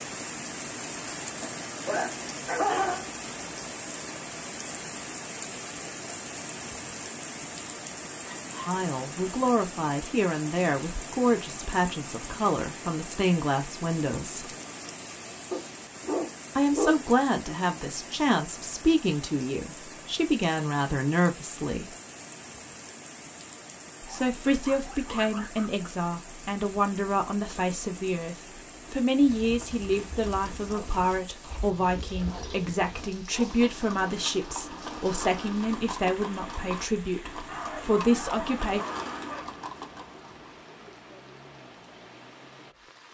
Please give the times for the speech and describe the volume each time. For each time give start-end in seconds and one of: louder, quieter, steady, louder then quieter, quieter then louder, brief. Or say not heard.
8.7-14.6 steady
16.6-21.9 steady
24.0-38.8 steady.